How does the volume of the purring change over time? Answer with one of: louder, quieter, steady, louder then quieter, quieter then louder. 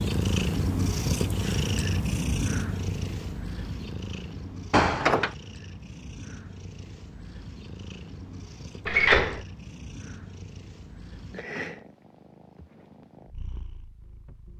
quieter.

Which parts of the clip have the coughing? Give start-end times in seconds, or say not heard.
not heard.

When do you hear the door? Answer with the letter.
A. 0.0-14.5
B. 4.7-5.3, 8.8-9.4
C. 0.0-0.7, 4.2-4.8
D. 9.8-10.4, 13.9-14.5
B.